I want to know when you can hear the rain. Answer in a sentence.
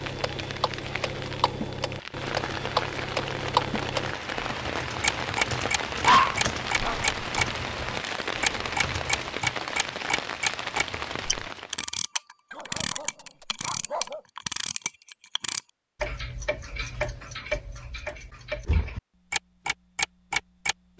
You can hear the rain from 0.0 to 11.8 s.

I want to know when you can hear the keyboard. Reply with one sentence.
The keyboard can be heard from 4.0 to 11.5 s.